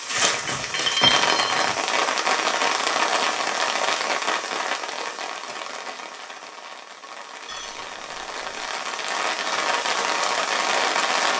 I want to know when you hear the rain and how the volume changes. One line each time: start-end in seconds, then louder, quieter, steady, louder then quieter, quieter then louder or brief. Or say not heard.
0.0-11.3 quieter then louder.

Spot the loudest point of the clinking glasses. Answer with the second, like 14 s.
1 s.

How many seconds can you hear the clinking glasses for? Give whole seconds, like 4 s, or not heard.
3 s.